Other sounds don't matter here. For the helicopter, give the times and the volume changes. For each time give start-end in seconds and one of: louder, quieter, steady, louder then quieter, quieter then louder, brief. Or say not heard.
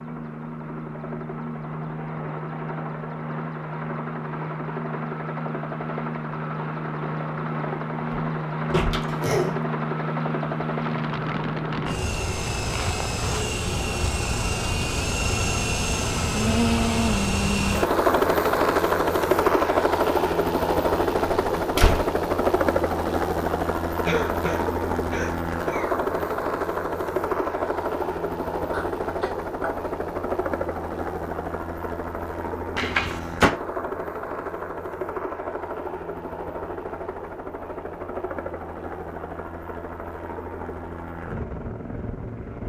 0.0-42.6 louder then quieter.